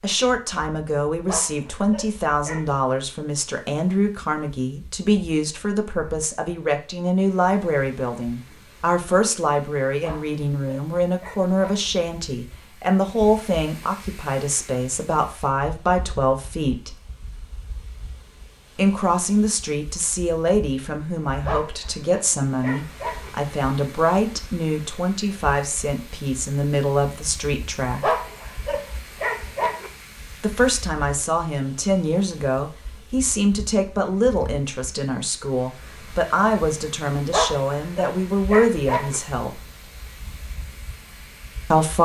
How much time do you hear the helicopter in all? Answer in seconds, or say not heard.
not heard.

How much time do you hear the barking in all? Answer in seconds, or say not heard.
9 s.